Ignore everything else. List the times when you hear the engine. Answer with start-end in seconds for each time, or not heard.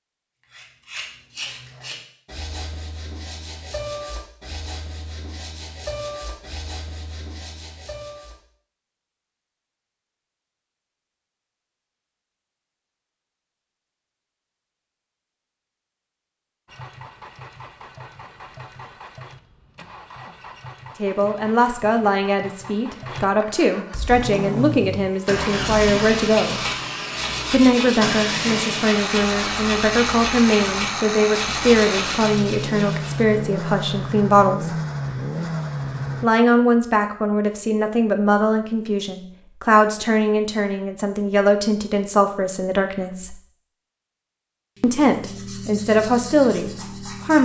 16.6-36.2.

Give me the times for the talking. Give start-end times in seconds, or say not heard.
21.0-26.6, 27.5-34.8, 36.2-43.4, 44.8-47.4.